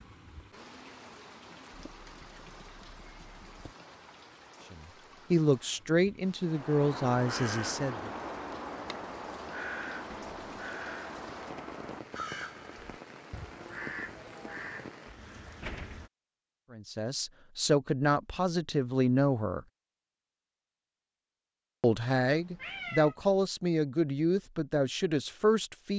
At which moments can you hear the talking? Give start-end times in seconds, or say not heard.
4.7-8.1, 16.7-19.6, 21.8-25.9.